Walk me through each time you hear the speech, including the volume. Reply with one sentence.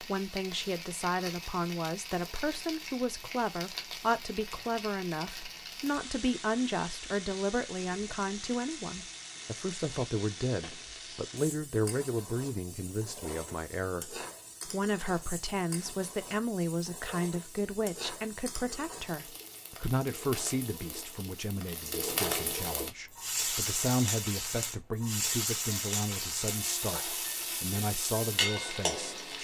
You can hear the speech from 0.0 to 29.3 s, at a steady volume.